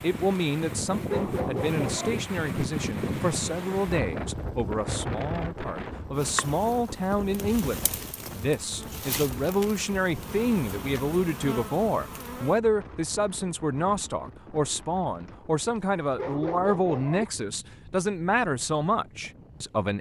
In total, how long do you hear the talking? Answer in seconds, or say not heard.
20 s.